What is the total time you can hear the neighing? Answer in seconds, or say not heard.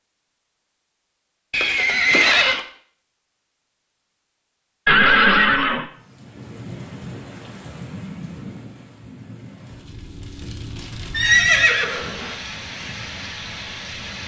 3 s.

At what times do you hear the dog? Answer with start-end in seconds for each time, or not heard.
not heard.